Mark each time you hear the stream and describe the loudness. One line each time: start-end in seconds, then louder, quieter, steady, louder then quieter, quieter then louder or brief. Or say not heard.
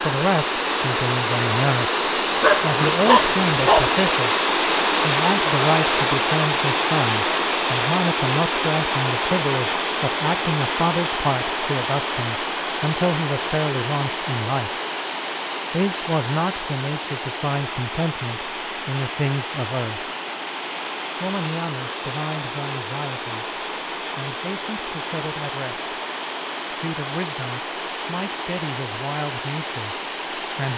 0.0-30.7 quieter.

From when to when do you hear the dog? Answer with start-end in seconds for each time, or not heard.
2.4-4.0.